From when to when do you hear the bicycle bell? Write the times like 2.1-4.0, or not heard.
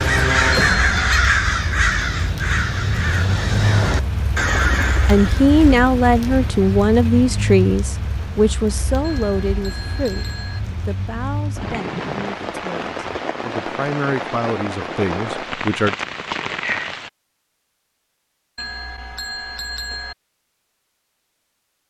0.6-1.1, 9.0-10.6, 18.6-20.1.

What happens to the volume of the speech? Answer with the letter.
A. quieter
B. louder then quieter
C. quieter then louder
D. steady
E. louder
C.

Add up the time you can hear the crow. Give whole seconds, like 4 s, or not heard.
6 s.